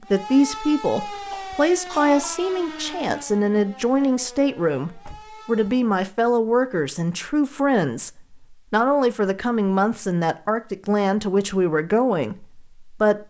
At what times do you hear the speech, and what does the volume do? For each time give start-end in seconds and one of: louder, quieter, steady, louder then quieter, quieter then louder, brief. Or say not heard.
0.0-13.2 steady.